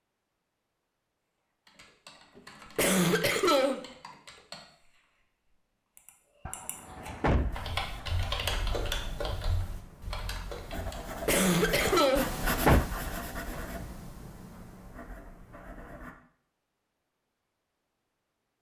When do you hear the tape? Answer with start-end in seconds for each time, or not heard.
not heard.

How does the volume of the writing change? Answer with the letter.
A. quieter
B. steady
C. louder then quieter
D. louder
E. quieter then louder
C.